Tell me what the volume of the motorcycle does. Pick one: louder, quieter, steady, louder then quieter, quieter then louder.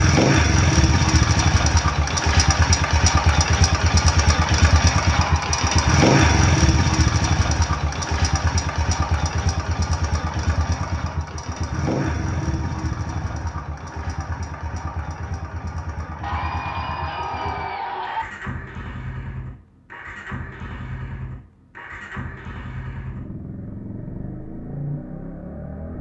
quieter.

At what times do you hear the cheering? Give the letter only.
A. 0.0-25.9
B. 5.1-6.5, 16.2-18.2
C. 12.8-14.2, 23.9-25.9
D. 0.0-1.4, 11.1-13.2
B.